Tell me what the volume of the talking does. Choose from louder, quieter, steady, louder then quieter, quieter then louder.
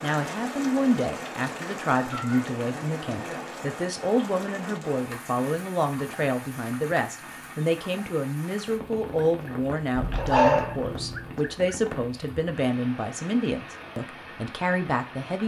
steady.